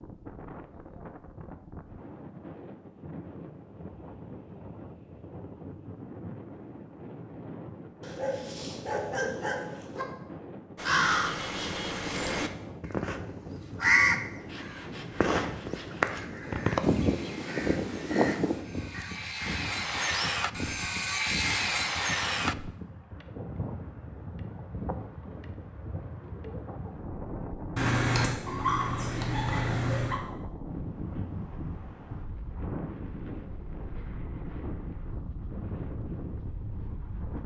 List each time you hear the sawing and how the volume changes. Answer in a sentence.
The sawing can be heard from 14.4 to 22.7 s, getting louder.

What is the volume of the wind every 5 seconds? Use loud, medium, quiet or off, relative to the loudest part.
medium, loud, loud, loud, loud, loud, loud, loud.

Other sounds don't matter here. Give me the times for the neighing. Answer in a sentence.
You can't hear the neighing here.